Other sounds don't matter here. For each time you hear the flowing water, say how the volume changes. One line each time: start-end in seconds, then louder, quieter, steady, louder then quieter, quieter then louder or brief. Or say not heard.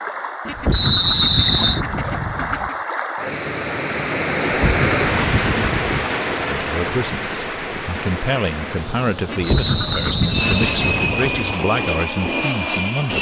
0.0-11.2 louder then quieter.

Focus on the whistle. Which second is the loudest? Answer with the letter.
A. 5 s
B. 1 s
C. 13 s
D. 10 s
B.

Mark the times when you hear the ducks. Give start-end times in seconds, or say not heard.
0.5-2.8, 4.4-6.1, 9.2-11.6.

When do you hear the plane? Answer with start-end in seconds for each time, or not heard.
10.3-13.1.